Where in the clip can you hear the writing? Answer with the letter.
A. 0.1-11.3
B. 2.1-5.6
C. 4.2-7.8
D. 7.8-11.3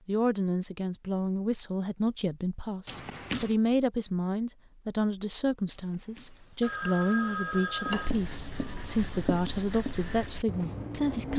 D.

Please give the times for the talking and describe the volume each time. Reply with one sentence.
You can hear the talking from 0.1 to 11.3 s, at a steady volume.